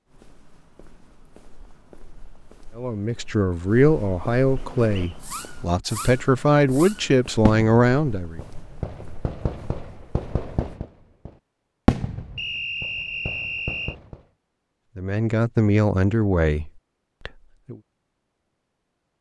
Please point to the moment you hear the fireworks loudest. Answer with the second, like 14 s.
12 s.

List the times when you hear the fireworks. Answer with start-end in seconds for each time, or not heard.
4.5-14.2.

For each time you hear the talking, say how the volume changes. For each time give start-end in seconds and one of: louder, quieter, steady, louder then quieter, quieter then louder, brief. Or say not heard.
2.8-8.4 quieter then louder
14.9-17.8 brief.